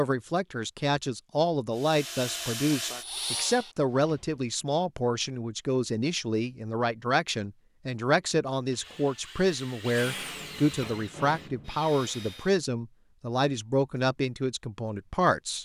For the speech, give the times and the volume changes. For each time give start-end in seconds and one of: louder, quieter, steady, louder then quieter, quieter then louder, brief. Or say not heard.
0.0-15.5 steady.